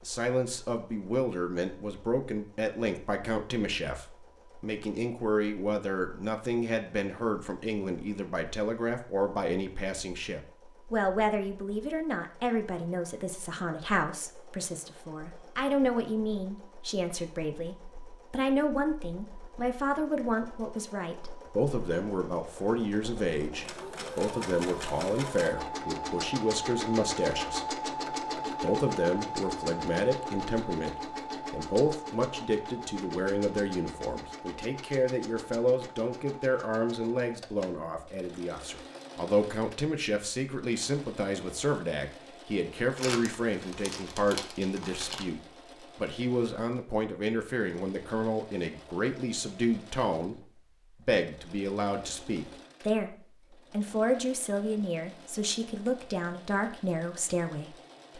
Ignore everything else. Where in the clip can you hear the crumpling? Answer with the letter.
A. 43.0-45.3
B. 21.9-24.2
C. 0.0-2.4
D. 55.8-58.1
A.